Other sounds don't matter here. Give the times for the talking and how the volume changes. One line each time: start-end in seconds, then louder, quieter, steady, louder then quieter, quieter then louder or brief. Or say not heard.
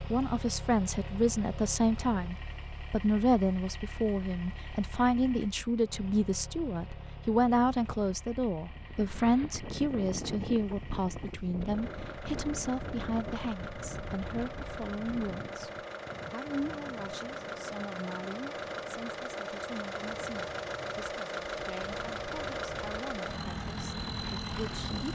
0.1-25.1 quieter.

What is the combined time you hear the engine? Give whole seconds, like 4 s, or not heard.
25 s.